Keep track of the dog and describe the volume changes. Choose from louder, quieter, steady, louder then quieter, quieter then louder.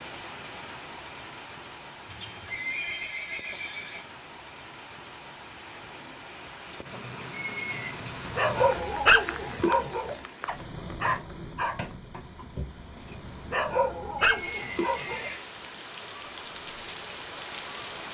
quieter then louder.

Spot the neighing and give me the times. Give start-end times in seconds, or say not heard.
2.0-4.0, 7.3-8.0, 14.2-15.4.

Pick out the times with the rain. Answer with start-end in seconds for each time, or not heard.
0.0-18.1.